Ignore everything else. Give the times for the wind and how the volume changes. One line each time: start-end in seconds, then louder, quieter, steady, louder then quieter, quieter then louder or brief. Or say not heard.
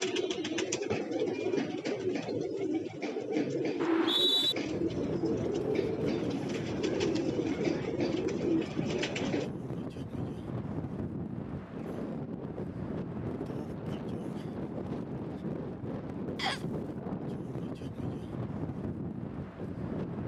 4.7-20.2 steady.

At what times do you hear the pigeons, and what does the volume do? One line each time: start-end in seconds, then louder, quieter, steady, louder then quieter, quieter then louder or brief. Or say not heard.
0.0-9.5 steady.